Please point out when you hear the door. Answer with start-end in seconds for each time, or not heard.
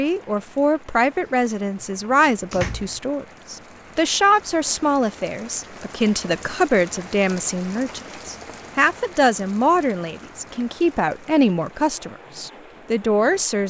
1.2-3.0.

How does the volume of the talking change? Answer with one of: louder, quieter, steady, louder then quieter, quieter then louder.
steady.